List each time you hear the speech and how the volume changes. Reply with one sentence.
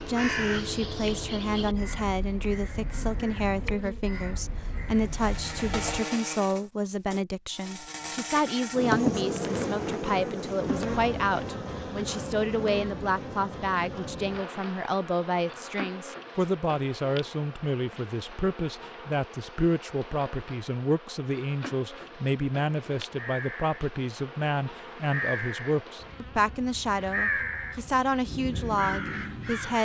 The speech can be heard from 0.1 to 29.8 s, at a steady volume.